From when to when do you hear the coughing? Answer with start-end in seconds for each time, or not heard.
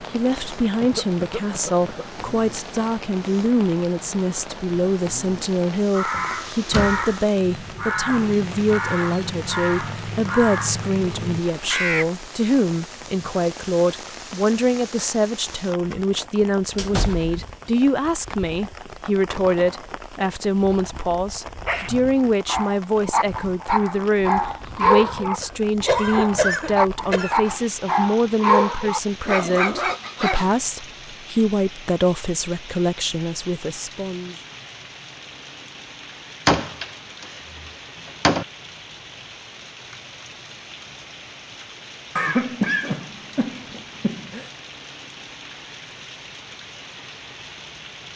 0.8-2.0, 25.4-27.4, 42.1-44.5.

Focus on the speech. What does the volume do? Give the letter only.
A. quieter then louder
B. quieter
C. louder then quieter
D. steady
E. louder
D.